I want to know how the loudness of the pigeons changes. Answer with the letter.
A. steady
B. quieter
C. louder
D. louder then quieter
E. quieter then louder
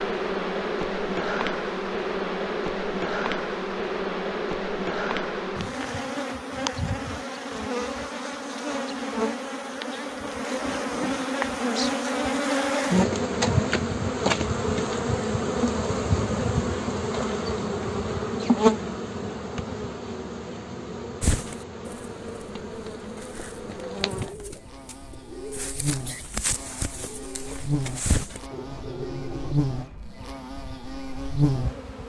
C.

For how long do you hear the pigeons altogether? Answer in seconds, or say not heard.
8 s.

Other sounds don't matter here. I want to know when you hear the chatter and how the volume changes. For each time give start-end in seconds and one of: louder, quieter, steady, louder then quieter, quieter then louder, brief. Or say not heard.
not heard.